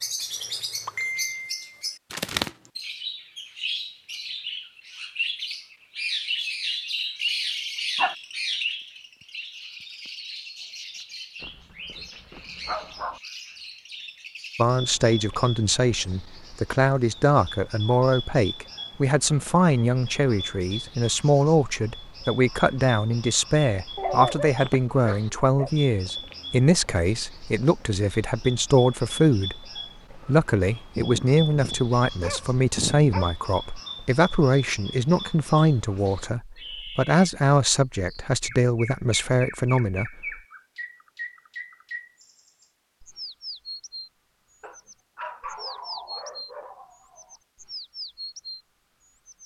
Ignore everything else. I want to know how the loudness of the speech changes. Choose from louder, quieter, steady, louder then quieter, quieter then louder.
steady.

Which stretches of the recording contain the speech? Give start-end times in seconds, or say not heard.
14.6-40.1.